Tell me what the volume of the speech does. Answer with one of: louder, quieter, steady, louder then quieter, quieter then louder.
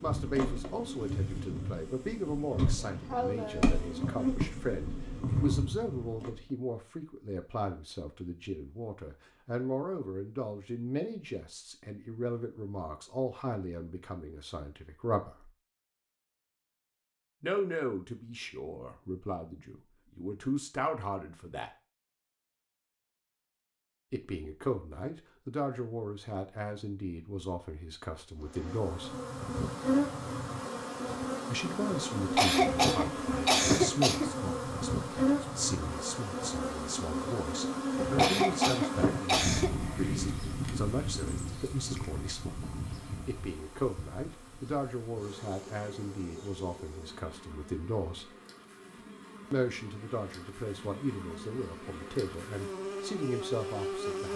steady.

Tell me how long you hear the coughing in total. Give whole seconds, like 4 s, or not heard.
5 s.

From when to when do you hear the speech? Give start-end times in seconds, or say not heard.
0.0-15.5, 17.4-21.7, 24.1-29.1, 31.4-42.5, 43.2-48.3, 49.5-54.3.